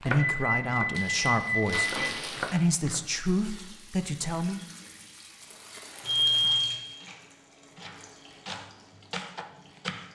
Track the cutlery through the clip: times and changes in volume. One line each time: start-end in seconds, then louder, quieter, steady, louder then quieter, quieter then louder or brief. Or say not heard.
not heard.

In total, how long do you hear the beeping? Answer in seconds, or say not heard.
3 s.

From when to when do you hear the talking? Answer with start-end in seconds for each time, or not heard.
0.0-4.6.